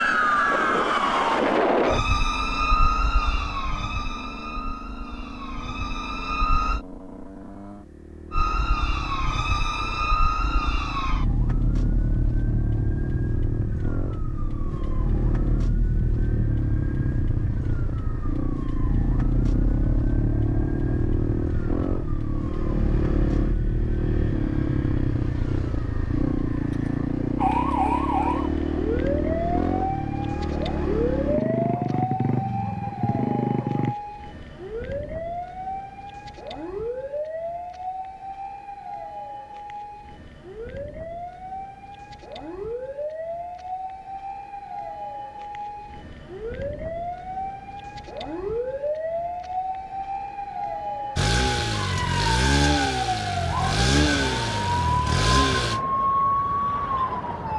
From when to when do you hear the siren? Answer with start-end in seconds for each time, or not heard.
0.0-6.8, 8.3-57.5.